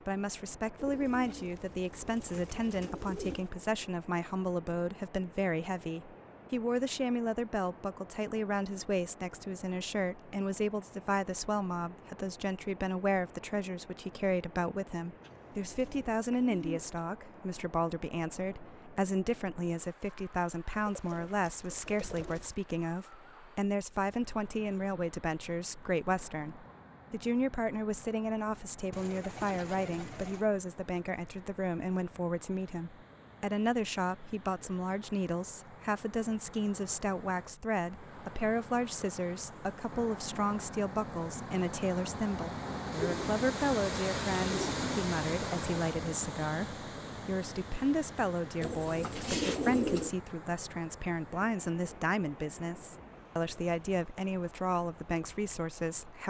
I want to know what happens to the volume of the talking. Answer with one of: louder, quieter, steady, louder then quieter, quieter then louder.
steady.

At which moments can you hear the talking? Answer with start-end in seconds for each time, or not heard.
0.1-56.2.